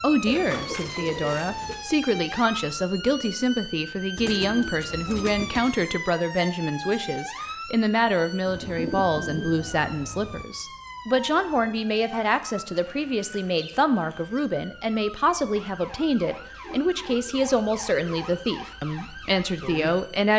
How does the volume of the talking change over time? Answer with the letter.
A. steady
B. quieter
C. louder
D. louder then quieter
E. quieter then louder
A.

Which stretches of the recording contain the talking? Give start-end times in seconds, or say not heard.
0.0-20.3.